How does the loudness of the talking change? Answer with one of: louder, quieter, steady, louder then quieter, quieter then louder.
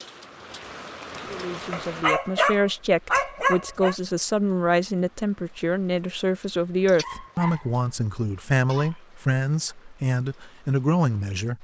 steady.